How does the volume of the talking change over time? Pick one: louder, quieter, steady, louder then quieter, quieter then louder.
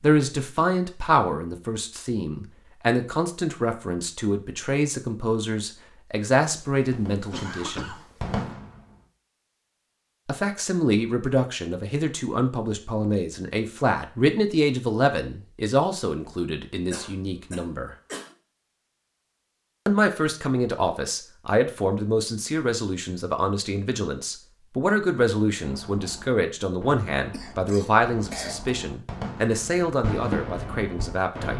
steady.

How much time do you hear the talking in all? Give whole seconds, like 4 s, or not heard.
27 s.